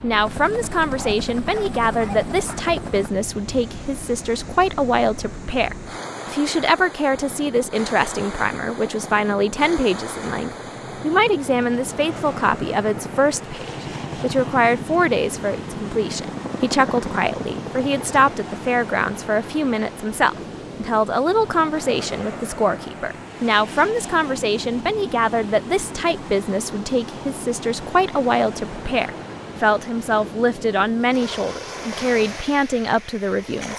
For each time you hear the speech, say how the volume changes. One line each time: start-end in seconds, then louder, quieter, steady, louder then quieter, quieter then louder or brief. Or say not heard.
0.0-33.7 steady.